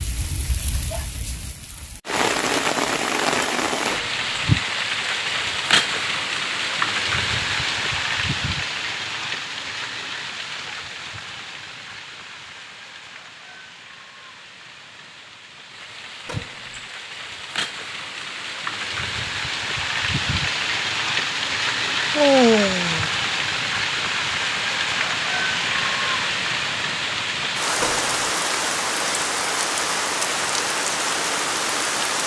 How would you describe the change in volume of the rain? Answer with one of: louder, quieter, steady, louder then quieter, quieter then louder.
quieter then louder.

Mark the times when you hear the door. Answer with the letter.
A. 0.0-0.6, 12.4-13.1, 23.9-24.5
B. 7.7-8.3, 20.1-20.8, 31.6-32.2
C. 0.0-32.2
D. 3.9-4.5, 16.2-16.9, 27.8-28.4
D.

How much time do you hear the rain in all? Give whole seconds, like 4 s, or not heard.
32 s.